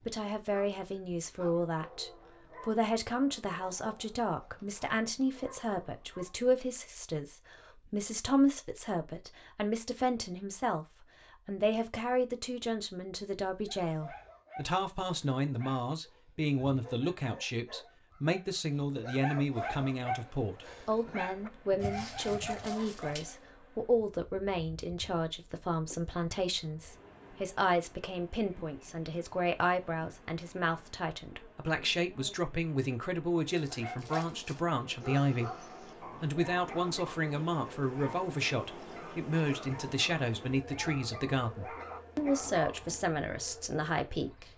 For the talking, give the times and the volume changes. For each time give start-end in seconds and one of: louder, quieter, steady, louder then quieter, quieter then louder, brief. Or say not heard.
0.1-44.5 steady.